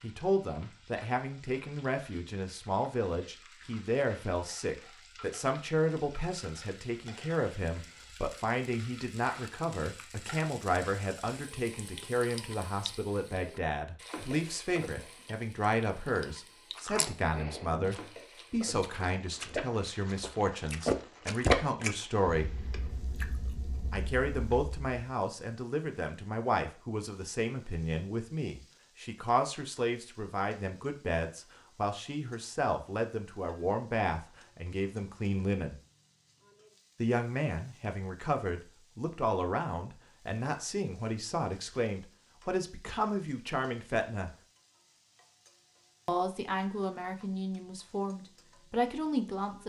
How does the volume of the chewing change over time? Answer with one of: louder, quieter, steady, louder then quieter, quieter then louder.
louder then quieter.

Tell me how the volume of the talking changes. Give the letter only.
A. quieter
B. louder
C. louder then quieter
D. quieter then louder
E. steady
E.